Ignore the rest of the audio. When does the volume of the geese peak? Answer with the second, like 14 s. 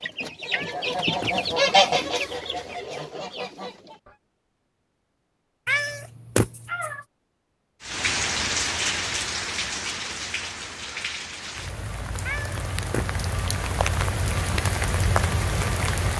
2 s.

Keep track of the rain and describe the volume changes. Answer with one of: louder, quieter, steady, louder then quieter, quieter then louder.
quieter then louder.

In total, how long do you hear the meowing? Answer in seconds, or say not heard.
4 s.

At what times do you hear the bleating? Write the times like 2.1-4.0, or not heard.
not heard.